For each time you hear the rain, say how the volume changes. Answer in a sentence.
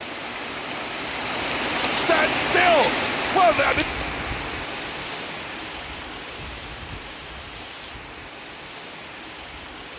You can hear the rain from 0.0 to 9.9 s, getting quieter.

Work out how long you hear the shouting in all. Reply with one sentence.
The shouting can be heard for 2 seconds in total.